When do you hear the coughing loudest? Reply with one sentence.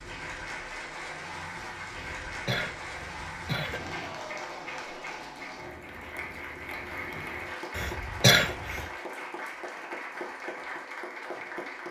The volume of the coughing peaks at 8 seconds.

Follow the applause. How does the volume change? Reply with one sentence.
The loudness of the applause stays about the same.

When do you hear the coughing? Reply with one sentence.
You can hear the coughing from 1.9 to 3.9 s and from 7.8 to 8.8 s.